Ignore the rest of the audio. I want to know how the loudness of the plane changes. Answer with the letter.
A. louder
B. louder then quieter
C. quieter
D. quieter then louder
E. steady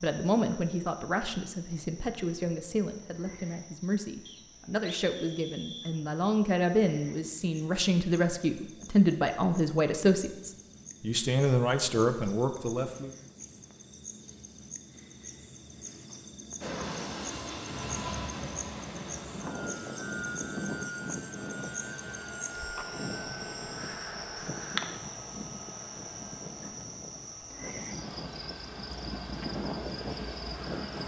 D.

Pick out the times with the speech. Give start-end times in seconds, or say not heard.
0.0-13.1.